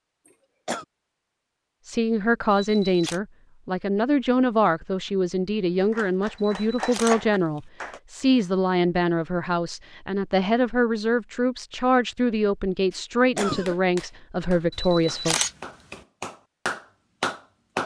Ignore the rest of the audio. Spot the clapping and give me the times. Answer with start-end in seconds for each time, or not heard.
5.8-8.0, 12.9-17.8.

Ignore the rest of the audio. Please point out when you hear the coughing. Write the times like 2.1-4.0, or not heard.
0.2-0.8, 13.3-13.8.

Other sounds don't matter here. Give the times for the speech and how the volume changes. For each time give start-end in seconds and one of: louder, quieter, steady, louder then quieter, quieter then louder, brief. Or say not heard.
1.9-15.3 steady.